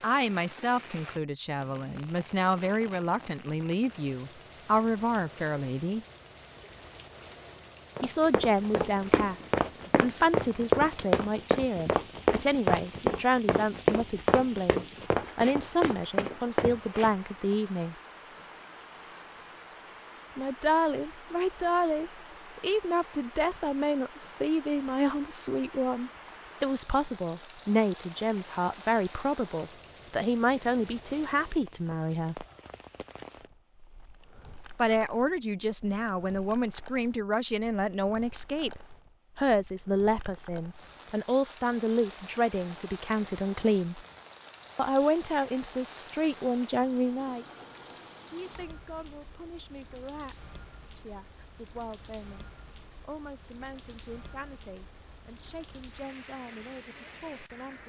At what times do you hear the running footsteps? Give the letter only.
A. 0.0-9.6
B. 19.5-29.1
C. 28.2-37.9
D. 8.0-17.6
D.